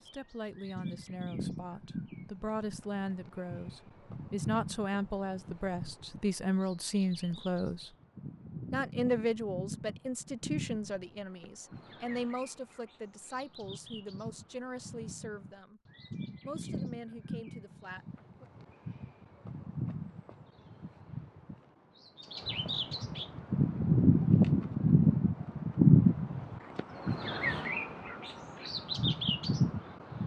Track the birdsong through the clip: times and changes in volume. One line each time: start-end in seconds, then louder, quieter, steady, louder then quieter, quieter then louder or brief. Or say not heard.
0.0-30.2 louder.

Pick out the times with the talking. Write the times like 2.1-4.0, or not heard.
0.0-7.9, 8.7-15.8, 16.4-18.4.